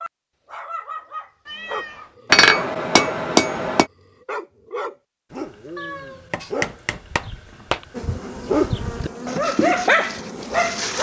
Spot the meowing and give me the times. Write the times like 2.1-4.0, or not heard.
1.4-2.1, 5.8-6.5.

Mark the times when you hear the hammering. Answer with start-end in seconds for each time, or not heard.
2.3-3.9, 6.3-7.8.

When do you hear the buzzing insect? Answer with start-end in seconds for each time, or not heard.
7.9-10.9.